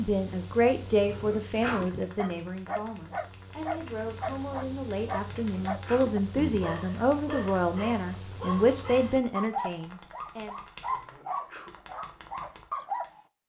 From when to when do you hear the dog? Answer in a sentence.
You can hear the dog from 1.6 to 13.2 s.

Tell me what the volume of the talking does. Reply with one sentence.
The volume of the talking goes down, then up.